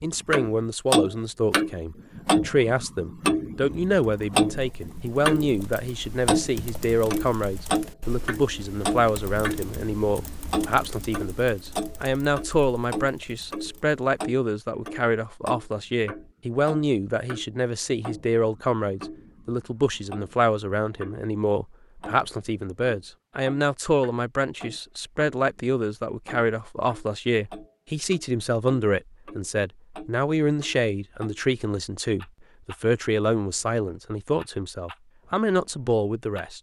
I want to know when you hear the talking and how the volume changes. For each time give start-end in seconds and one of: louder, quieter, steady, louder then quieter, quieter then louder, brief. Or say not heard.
0.0-36.5 steady.